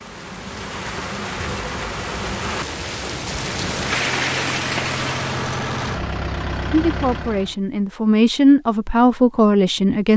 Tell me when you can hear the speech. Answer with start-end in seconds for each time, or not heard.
6.7-10.1.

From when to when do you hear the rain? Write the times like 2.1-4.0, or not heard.
0.0-5.5.